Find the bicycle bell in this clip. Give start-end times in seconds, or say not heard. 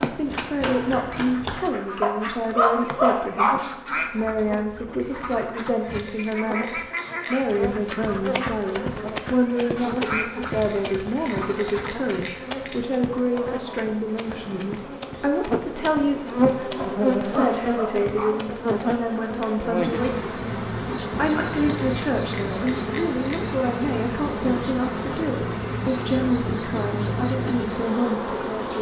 5.8-7.6, 10.4-12.9, 21.5-23.6.